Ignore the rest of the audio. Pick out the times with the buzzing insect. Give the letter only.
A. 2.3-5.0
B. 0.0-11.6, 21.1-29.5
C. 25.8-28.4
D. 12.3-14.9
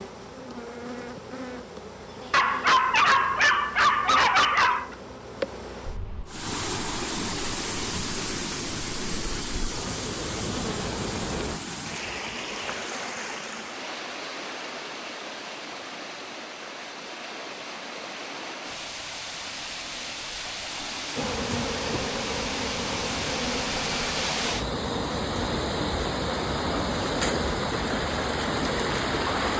B.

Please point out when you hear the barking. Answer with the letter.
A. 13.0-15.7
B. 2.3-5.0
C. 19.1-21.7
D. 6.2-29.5
B.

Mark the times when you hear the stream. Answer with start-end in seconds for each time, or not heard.
6.2-29.5.